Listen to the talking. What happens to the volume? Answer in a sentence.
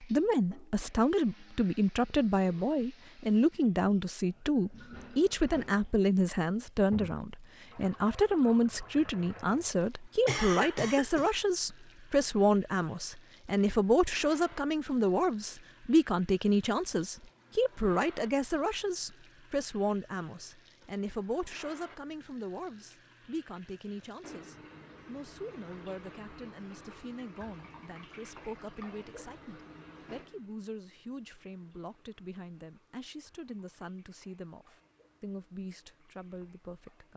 The loudness of the talking goes down.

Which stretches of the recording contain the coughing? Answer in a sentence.
The coughing can be heard from 10.2 to 11.3 s.